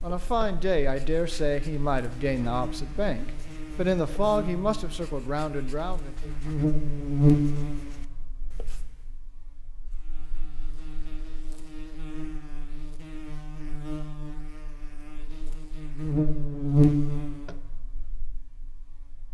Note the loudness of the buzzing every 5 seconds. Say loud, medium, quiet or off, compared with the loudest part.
quiet, loud, quiet, loud.